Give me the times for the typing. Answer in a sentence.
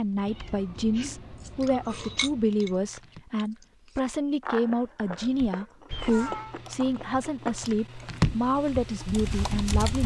You can hear the typing from 0.0 to 3.2 s and from 5.2 to 10.0 s.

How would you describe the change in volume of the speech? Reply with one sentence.
The loudness of the speech stays about the same.